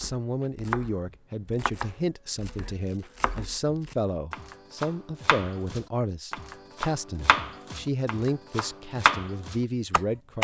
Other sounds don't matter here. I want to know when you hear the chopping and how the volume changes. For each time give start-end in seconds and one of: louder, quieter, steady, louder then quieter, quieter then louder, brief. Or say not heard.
0.0-10.3 quieter then louder.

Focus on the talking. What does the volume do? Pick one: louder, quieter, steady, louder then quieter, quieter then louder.
steady.